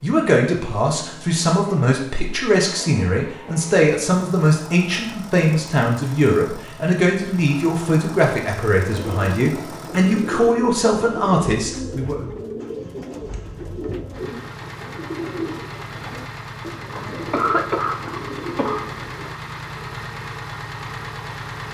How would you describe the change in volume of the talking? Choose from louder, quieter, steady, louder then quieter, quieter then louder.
steady.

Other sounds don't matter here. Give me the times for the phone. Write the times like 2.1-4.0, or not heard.
not heard.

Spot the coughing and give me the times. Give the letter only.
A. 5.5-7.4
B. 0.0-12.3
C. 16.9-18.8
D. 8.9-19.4
C.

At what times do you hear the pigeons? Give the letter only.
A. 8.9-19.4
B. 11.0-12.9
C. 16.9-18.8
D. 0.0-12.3
A.